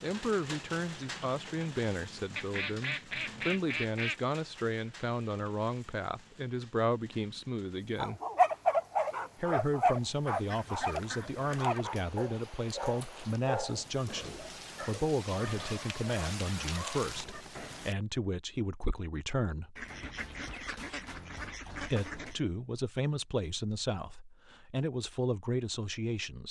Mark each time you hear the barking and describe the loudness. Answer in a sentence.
You can hear the barking from 8.0 to 17.9 s, getting quieter.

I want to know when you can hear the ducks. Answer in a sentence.
The ducks can be heard from 2.4 to 4.2 s, from 10.2 to 11.8 s and from 19.8 to 22.4 s.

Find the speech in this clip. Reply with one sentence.
The speech can be heard from 0.0 to 8.2 s, from 9.3 to 19.8 s and from 21.7 to 26.4 s.